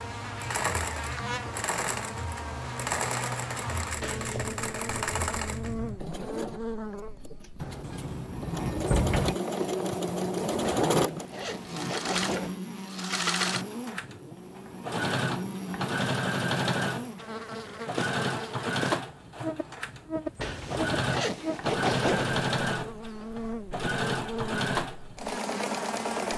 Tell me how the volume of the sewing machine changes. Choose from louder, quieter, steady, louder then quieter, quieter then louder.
steady.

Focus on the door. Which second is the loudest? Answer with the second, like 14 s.
9 s.